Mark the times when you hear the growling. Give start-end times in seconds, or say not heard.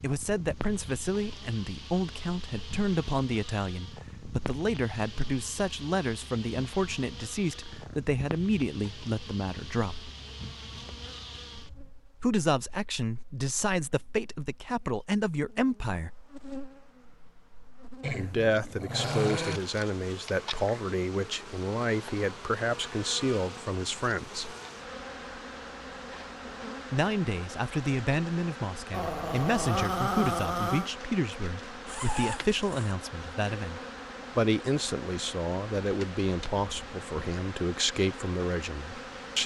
7.4-8.1, 18.0-19.6, 28.9-30.9.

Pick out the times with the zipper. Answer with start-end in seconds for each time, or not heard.
31.9-33.0.